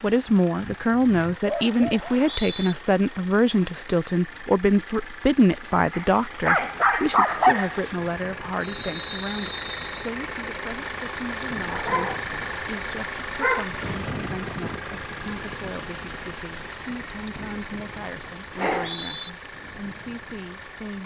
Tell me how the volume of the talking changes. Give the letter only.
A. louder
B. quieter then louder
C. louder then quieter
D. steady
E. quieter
E.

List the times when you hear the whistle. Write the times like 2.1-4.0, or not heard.
2.0-2.8, 8.6-9.8, 18.8-19.3.